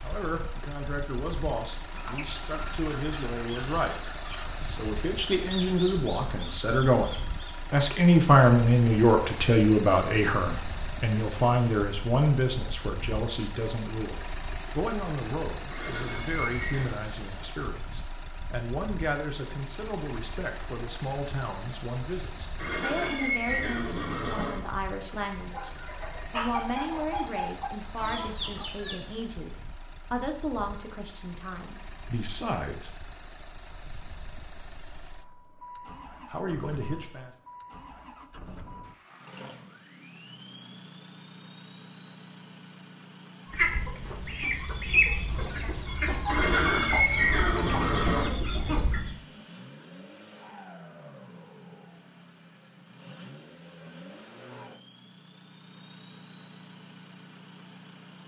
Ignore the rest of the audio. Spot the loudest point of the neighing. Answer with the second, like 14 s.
47 s.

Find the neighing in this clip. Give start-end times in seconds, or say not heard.
15.7-17.0, 22.6-24.6, 46.2-48.3.